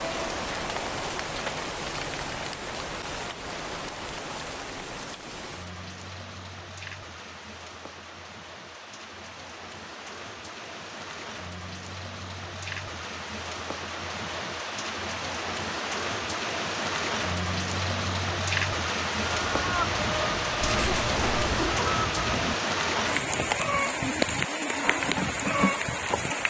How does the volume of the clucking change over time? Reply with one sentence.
The loudness of the clucking stays about the same.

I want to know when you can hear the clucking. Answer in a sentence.
The clucking can be heard from 19.3 to 26.4 s.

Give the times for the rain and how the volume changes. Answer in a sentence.
You can hear the rain from 0.0 to 26.4 s, getting quieter then louder.